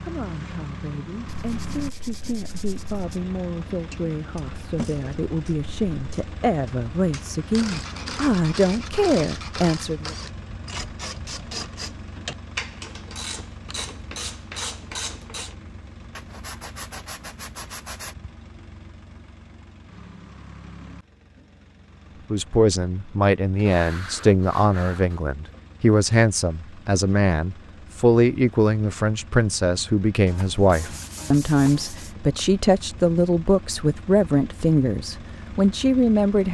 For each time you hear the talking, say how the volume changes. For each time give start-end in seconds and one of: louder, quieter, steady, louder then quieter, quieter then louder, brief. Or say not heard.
0.0-10.2 louder
22.3-36.4 steady.